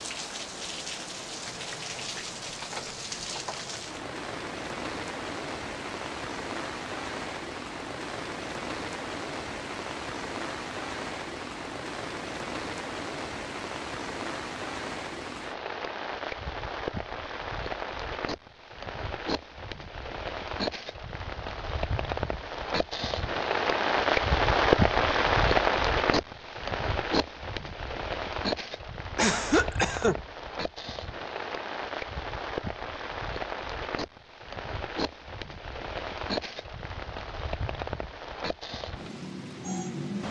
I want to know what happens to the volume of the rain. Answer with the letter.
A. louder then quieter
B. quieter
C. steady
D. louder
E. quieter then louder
A.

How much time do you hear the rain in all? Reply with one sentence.
You can hear the rain for 40 seconds altogether.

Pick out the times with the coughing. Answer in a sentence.
The coughing can be heard from 29.1 to 30.1 s.